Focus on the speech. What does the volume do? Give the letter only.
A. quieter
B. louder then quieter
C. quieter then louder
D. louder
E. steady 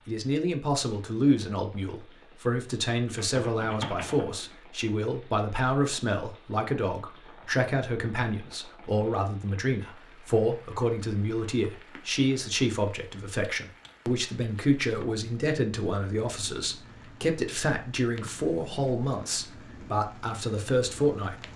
E.